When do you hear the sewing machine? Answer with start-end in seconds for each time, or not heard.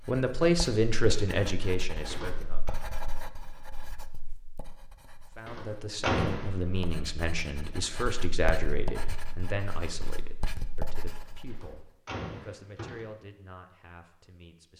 not heard.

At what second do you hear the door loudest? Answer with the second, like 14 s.
6 s.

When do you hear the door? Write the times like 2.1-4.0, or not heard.
2.0-2.7, 5.5-6.8, 11.5-13.1.